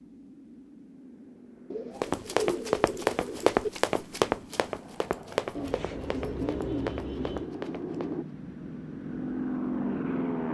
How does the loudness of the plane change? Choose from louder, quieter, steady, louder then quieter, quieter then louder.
louder.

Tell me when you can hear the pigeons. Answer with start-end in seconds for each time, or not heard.
1.7-3.7, 5.5-7.5.